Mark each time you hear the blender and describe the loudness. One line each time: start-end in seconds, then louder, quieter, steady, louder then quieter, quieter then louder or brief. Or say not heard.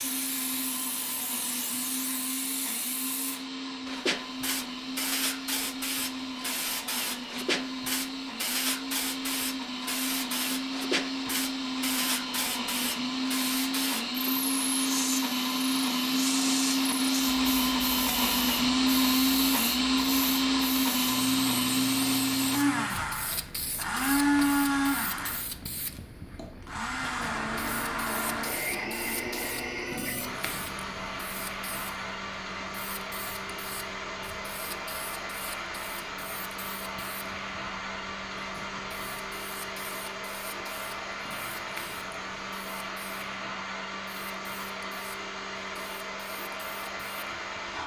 0.0-47.8 louder then quieter.